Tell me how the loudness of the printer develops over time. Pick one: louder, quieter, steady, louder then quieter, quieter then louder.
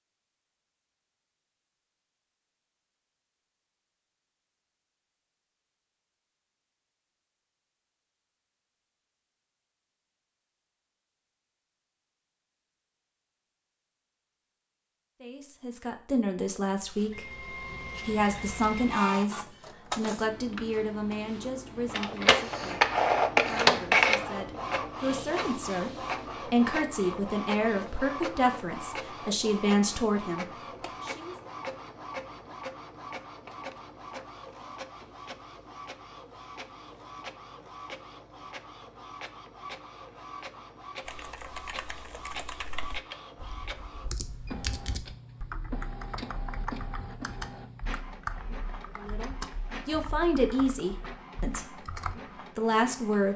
quieter.